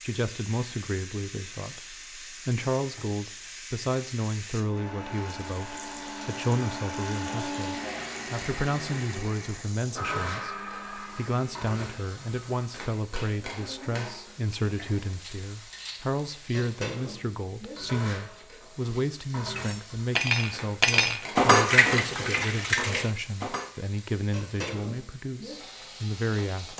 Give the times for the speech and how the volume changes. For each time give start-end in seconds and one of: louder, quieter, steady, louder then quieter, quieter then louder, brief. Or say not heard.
0.0-26.7 steady.